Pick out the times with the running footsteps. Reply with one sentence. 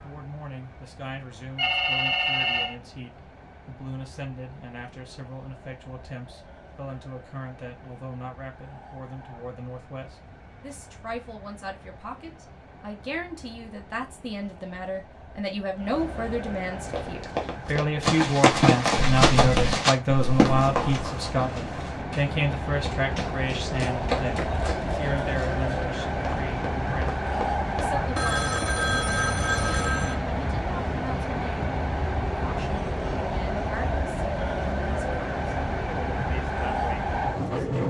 You can hear the running footsteps from 16.9 to 28.7 s.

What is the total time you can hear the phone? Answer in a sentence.
You can hear the phone for 4 seconds altogether.